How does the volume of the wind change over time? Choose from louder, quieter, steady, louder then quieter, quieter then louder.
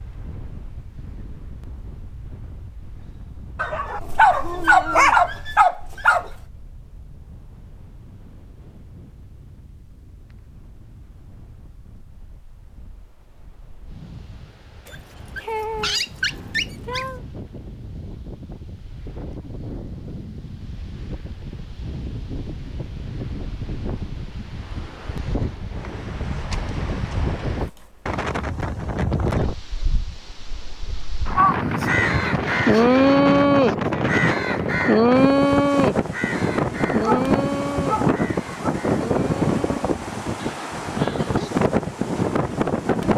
louder.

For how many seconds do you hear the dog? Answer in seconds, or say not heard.
7 s.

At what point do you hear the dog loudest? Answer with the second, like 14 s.
5 s.